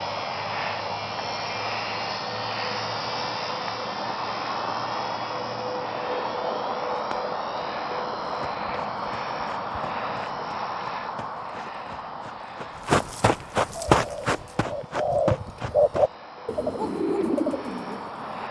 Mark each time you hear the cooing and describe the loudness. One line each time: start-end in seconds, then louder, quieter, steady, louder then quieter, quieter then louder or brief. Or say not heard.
13.7-18.4 louder then quieter.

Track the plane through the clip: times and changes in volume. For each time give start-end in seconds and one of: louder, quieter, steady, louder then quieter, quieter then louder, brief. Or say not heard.
0.0-18.4 quieter.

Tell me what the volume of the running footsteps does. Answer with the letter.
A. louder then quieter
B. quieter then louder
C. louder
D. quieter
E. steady
A.